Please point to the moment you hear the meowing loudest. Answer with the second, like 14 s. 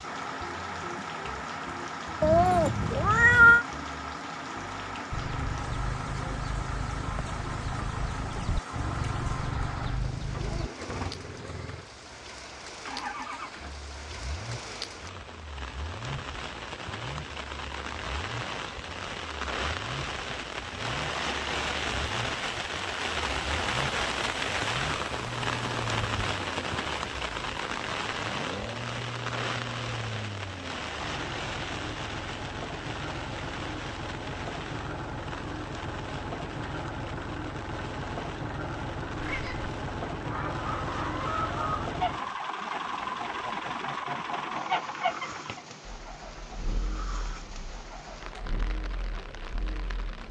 3 s.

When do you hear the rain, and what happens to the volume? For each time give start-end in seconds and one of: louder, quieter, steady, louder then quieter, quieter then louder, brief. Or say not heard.
0.0-50.2 louder then quieter.